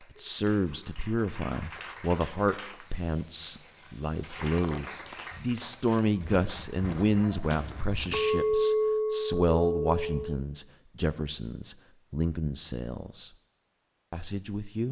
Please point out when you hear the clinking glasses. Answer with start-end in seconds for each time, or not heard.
4.4-5.1, 8.1-10.3.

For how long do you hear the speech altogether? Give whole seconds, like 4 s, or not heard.
14 s.